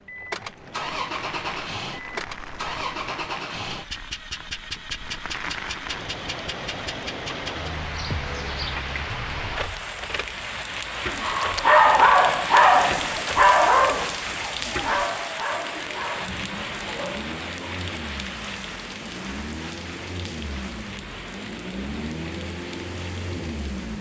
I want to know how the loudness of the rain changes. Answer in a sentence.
The loudness of the rain goes up, then down.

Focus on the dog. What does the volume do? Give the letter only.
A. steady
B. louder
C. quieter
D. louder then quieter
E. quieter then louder
C.